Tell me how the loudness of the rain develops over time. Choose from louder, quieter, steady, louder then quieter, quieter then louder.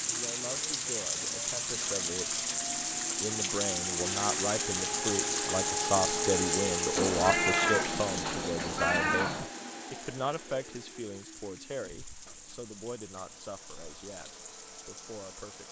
quieter.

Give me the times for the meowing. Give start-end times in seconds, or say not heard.
7.0-9.5.